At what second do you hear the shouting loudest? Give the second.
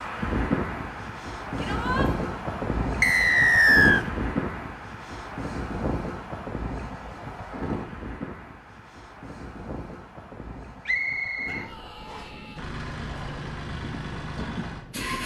2 s.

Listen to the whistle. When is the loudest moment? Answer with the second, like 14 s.
4 s.